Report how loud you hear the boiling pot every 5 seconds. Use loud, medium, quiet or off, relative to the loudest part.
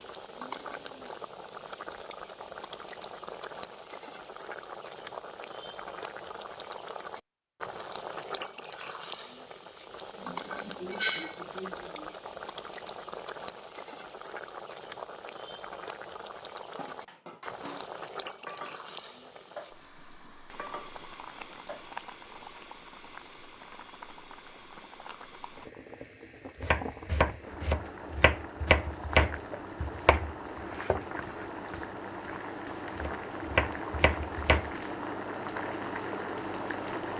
medium, medium, medium, medium, medium, medium, loud, loud.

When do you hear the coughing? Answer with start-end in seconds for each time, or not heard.
10.2-12.1.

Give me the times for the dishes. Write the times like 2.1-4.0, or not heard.
16.8-21.9.